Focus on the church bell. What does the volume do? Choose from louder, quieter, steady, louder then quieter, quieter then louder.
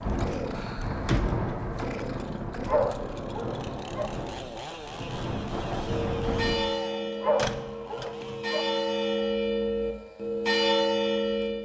quieter then louder.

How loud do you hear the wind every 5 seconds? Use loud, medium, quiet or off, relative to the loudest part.
loud, loud, off.